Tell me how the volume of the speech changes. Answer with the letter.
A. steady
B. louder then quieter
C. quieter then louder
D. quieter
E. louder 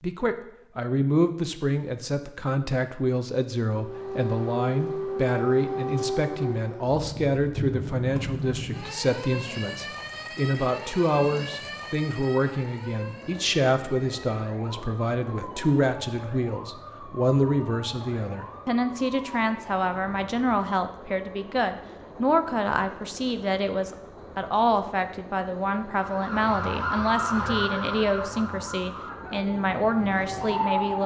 A.